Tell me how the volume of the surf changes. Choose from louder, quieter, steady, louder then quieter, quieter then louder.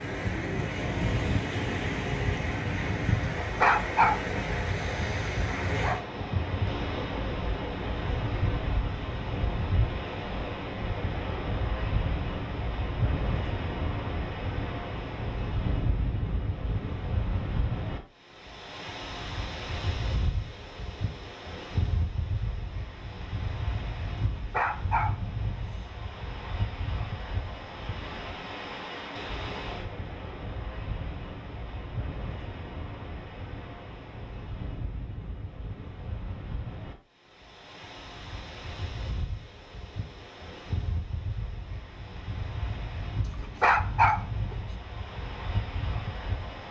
quieter.